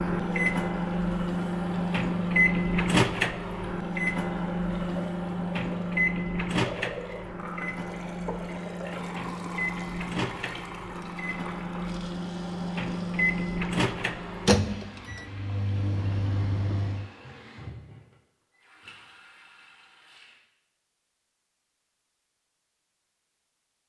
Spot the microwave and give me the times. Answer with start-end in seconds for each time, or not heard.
0.0-17.1.